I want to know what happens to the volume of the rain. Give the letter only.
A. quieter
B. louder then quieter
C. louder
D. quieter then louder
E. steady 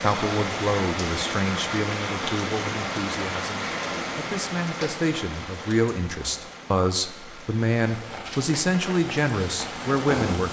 D.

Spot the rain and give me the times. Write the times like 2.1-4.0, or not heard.
0.0-10.4.